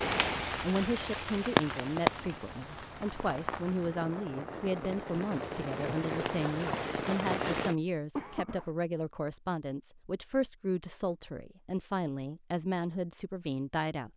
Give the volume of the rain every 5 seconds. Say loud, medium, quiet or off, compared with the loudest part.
loud, loud, off.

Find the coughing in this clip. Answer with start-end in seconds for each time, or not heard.
8.2-8.7.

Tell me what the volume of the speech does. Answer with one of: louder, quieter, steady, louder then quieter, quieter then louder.
steady.